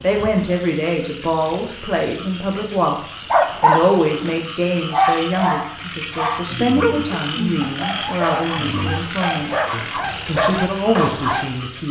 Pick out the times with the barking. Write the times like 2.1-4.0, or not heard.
3.3-11.5.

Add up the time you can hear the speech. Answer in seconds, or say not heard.
12 s.